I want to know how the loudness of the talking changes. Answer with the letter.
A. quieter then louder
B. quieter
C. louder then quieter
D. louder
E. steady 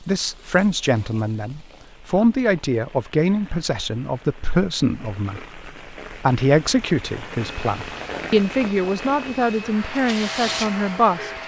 E.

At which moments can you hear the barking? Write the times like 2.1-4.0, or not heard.
not heard.